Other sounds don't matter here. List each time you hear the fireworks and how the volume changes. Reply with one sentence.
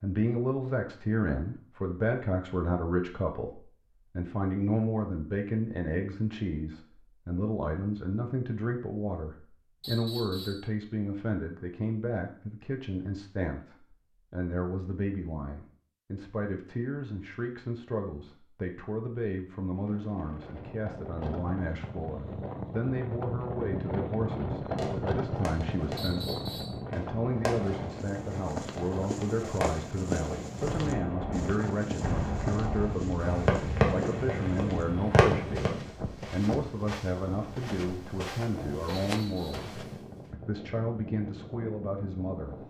You can hear the fireworks from 24.8 to 35.7 s, getting louder.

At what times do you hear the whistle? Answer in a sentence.
You can hear the whistle from 9.8 to 10.7 s, from 25.9 to 26.8 s and from 38.9 to 39.7 s.